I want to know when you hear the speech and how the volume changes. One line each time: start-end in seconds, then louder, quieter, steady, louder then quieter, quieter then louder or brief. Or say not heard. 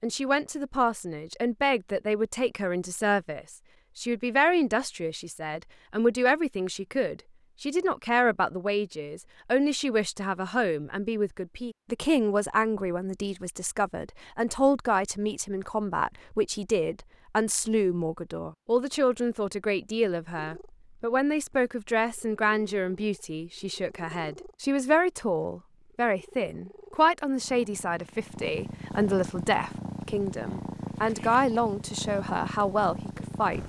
0.0-33.6 steady.